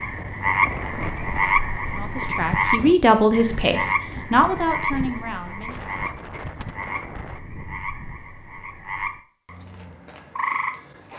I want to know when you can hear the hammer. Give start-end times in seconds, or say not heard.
not heard.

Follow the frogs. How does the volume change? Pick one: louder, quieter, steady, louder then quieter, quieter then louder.
quieter then louder.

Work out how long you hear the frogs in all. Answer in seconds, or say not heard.
11 s.